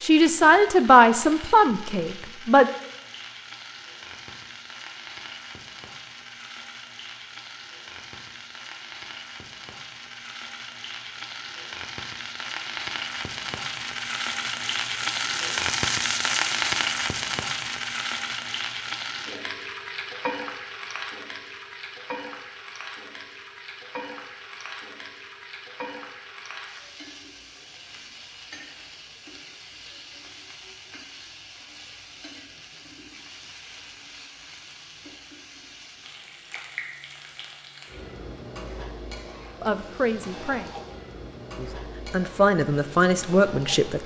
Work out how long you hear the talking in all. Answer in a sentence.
The talking can be heard for 6 seconds in total.